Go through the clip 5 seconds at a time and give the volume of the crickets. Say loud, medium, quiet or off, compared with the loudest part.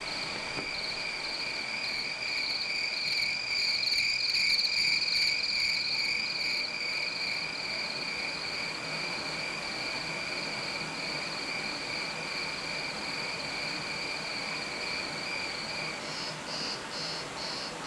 loud, loud, medium, medium.